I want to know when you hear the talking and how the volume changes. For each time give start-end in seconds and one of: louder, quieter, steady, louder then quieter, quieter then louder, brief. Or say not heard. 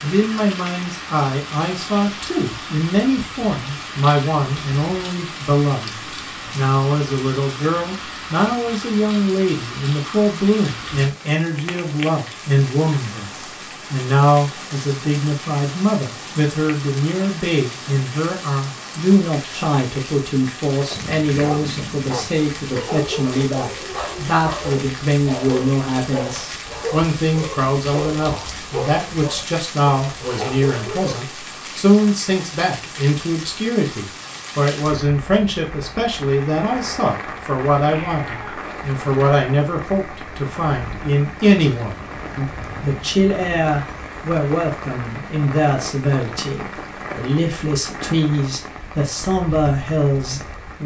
0.0-50.8 steady.